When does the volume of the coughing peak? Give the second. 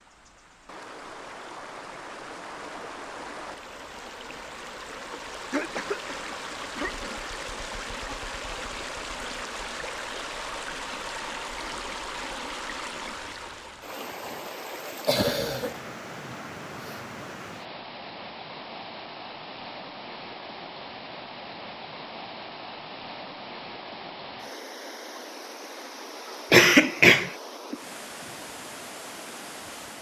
27 s.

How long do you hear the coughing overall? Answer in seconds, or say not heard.
5 s.